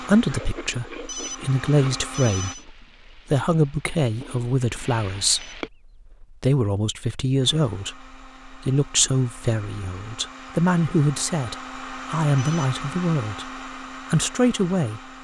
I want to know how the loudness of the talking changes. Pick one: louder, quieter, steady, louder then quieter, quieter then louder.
steady.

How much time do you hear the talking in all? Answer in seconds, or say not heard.
15 s.